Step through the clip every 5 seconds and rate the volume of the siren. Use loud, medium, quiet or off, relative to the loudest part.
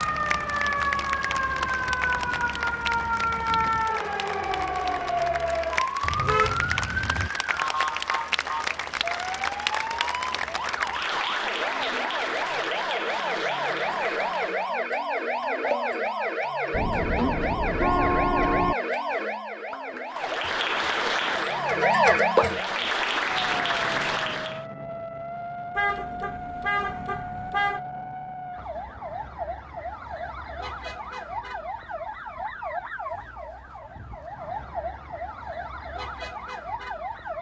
loud, loud, loud, loud, loud, medium, medium, medium.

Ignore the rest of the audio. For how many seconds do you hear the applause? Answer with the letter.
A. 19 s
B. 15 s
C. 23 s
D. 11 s
A.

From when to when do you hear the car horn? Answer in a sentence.
The car horn can be heard from 6.0 to 7.3 s, from 16.7 to 18.8 s and from 25.8 to 27.8 s.